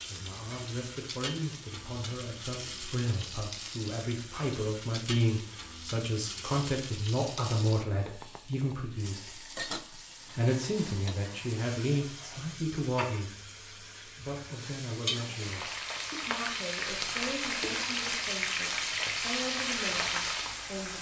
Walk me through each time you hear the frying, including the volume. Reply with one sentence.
You can hear the frying from 0.0 to 20.9 s, getting louder.